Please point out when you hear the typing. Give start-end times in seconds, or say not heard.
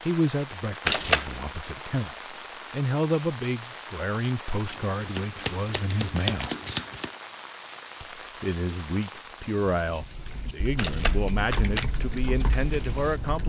9.8-13.4.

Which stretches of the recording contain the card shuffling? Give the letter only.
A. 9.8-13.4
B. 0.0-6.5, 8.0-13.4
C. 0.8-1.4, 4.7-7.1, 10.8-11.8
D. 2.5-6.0
C.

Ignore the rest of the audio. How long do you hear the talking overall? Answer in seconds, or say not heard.
12 s.